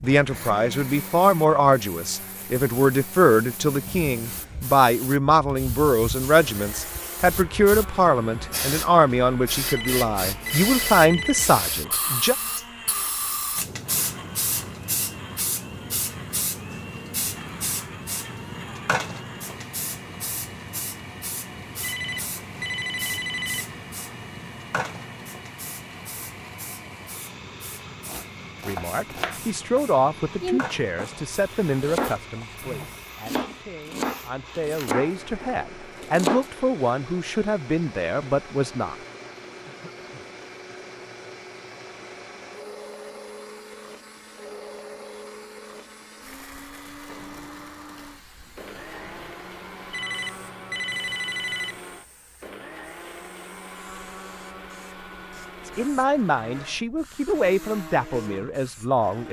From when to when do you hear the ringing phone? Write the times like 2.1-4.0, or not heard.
9.7-11.6, 21.8-23.8, 49.9-51.8.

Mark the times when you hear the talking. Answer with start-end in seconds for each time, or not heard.
0.0-12.3, 28.6-39.0, 55.6-59.2.